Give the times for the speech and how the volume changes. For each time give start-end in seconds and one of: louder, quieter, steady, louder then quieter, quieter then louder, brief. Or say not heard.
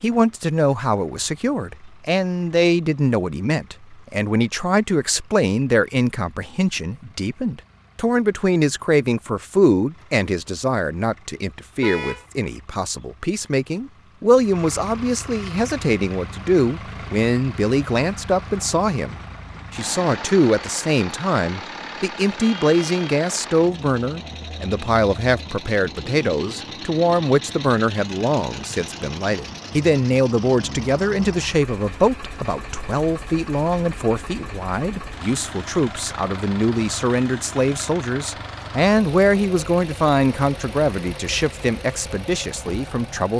0.0-43.3 steady.